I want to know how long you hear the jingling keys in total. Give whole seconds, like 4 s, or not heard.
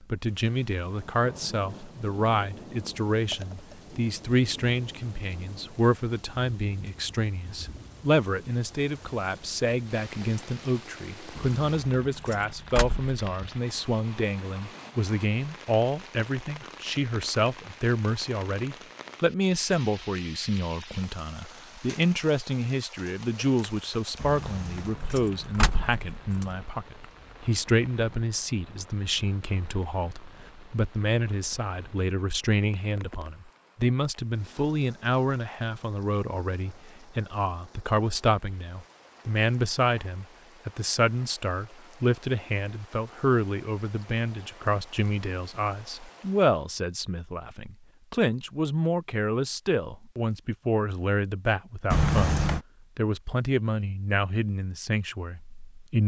5 s.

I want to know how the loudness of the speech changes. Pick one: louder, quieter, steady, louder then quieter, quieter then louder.
steady.